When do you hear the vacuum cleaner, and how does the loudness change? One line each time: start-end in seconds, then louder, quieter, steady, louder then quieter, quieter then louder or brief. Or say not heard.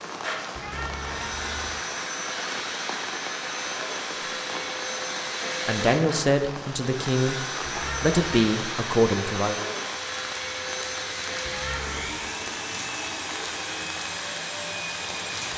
0.1-15.5 steady.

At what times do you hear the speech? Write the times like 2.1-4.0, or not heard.
5.7-7.3, 8.0-9.7.